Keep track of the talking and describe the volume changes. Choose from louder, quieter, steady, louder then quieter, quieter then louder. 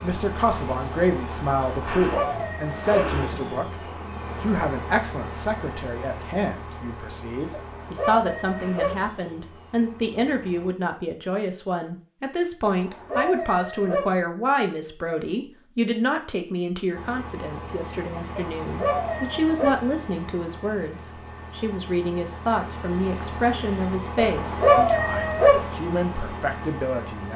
steady.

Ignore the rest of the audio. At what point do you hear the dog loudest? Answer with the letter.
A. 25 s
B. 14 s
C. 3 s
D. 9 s
A.